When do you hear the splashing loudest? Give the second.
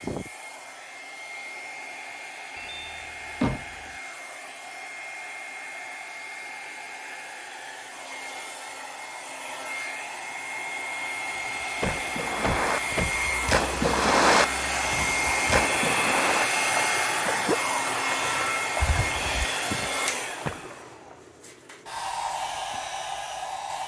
14 s.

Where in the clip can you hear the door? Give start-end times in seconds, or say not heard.
2.5-3.9, 11.8-13.2, 18.8-19.5.